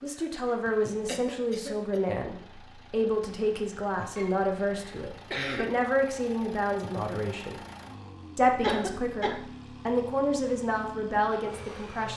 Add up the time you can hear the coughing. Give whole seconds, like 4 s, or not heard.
4 s.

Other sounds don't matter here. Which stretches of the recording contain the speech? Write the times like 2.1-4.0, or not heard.
0.0-7.5, 8.3-12.1.